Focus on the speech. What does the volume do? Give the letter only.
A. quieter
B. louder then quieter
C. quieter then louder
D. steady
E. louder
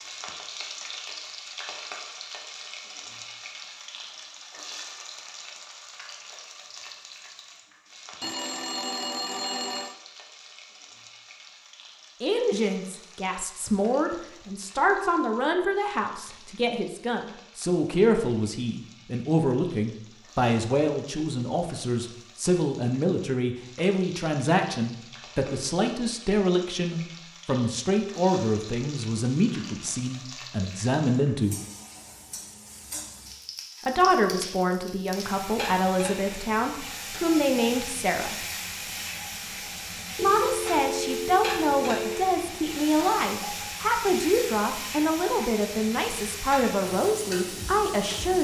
D.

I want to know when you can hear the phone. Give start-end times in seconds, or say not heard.
8.2-9.9, 40.2-42.2.